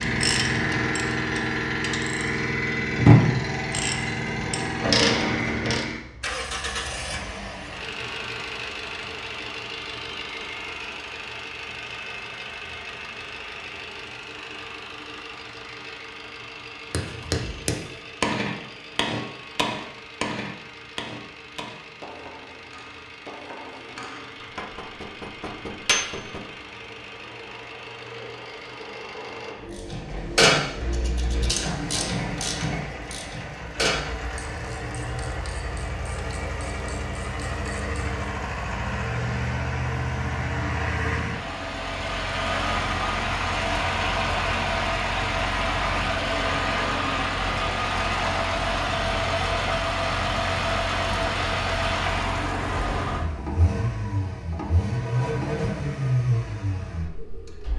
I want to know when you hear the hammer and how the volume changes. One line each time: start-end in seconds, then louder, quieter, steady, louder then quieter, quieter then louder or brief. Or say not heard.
16.9-26.4 quieter then louder.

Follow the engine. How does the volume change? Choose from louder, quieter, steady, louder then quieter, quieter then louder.
quieter then louder.